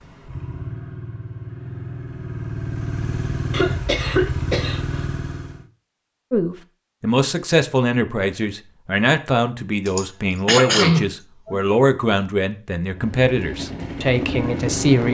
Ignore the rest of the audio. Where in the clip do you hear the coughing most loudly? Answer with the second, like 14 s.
11 s.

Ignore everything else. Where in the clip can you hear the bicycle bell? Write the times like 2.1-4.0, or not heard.
not heard.